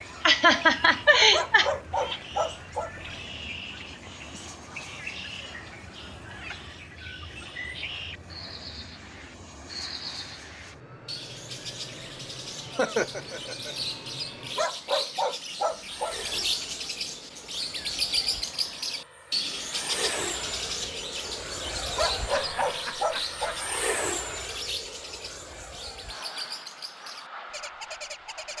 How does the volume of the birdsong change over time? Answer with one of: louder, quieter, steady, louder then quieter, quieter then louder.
louder then quieter.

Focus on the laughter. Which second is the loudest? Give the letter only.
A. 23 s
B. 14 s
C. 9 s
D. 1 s
D.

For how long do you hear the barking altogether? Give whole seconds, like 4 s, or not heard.
5 s.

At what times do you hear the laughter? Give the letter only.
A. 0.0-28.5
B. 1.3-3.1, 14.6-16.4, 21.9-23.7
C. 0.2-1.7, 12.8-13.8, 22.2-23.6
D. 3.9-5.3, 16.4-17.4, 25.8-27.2
C.